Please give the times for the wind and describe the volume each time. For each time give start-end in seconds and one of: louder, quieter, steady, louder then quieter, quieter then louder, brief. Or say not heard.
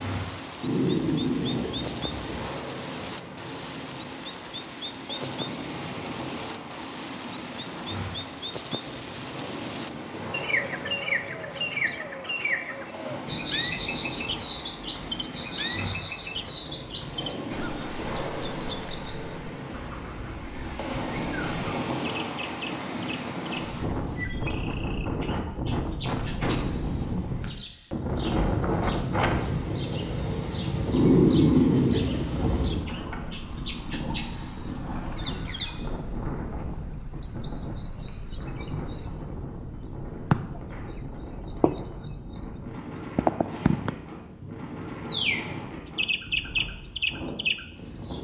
0.0-48.2 louder then quieter.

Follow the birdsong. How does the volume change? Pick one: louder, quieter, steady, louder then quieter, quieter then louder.
quieter then louder.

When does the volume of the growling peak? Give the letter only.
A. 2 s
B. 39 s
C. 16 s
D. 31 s
D.